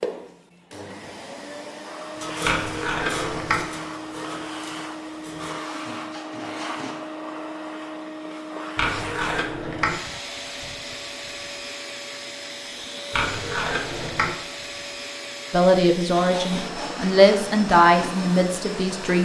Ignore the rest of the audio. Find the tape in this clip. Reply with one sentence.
The tape can be heard from 2.5 to 3.6 s, from 8.8 to 9.9 s and from 13.1 to 14.3 s.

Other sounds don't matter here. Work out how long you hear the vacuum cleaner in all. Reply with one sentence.
The vacuum cleaner can be heard for 19 seconds in total.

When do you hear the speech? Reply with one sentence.
The speech can be heard from 15.5 to 19.2 s.